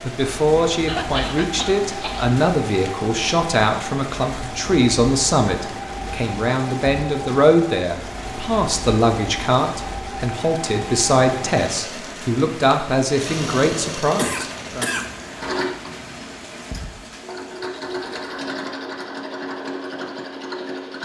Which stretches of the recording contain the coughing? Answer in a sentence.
The coughing can be heard from 0.8 to 2.4 s and from 14.2 to 15.1 s.